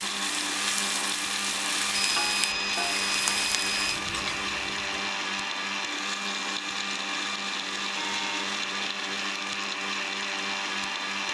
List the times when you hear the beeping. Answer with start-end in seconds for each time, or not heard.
1.9-4.0, 8.0-8.9.